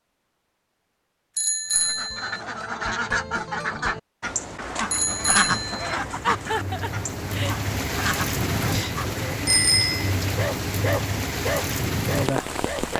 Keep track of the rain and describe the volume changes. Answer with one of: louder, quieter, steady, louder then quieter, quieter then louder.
louder.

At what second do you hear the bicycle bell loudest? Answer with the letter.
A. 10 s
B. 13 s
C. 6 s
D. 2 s
A.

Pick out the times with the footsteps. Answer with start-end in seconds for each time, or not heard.
not heard.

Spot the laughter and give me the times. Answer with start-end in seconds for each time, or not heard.
6.2-7.5.